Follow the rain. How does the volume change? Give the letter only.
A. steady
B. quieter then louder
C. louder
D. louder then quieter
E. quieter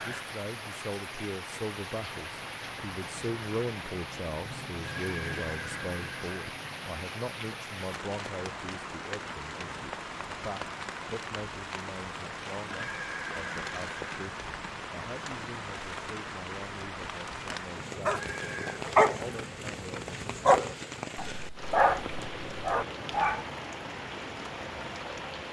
A.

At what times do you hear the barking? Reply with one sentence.
You can hear the barking from 18.1 to 23.4 s.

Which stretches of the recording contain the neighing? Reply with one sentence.
You can hear the neighing from 5.0 to 6.4 s, from 12.7 to 14.3 s and from 18.1 to 18.8 s.